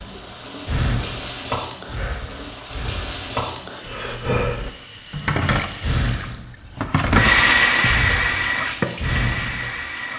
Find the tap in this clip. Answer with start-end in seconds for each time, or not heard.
0.0-10.1.